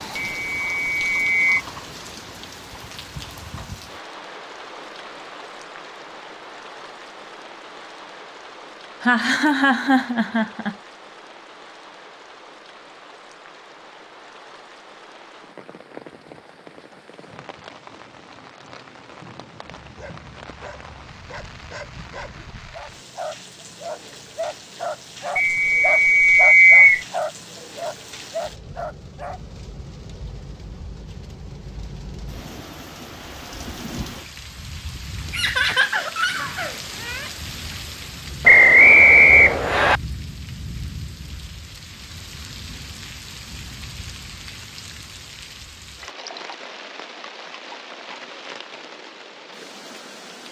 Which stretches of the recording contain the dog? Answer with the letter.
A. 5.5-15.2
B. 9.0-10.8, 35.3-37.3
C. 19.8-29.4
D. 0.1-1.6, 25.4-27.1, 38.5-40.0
C.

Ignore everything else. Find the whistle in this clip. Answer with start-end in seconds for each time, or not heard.
0.1-1.6, 25.4-27.1, 38.5-40.0.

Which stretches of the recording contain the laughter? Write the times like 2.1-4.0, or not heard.
9.0-10.8, 35.3-37.3.